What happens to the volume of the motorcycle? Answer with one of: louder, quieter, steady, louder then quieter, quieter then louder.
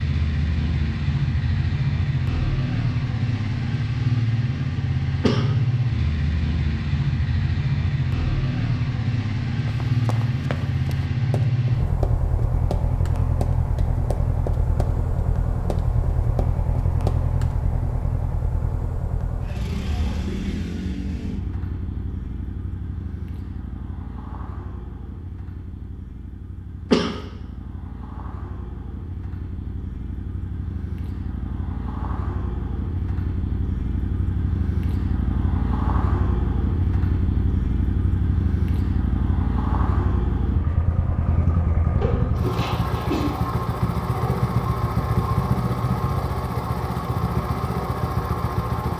quieter then louder.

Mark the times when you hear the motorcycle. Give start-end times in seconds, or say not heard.
0.0-48.9.